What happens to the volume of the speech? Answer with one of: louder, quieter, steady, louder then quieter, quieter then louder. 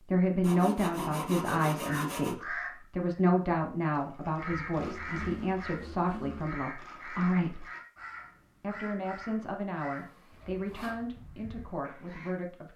quieter.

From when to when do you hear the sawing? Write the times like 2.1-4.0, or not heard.
0.4-2.4, 4.7-6.5, 9.9-11.1.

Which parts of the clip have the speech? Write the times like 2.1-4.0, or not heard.
0.1-7.7, 8.6-12.7.